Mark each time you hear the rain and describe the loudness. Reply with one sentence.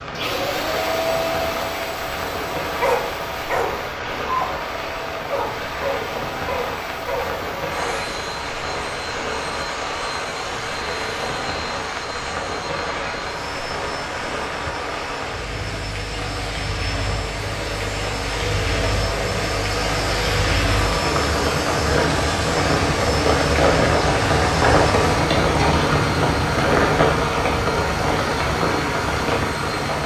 The rain can be heard from 0.0 to 30.0 s, getting louder.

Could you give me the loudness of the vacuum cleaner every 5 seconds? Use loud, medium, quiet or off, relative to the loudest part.
loud, medium, medium, loud, loud, loud.